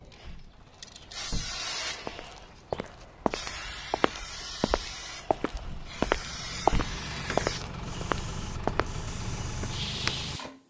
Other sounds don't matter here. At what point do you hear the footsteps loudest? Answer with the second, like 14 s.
7 s.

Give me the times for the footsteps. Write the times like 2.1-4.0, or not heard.
2.0-10.5.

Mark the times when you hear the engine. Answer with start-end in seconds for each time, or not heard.
0.0-10.4.